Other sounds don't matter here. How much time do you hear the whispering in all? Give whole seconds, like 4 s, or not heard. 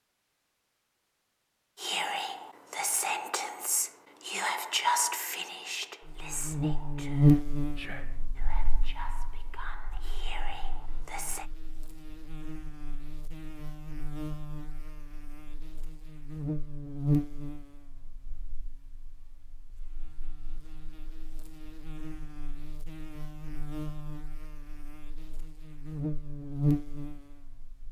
10 s.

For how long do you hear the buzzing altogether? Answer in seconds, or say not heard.
22 s.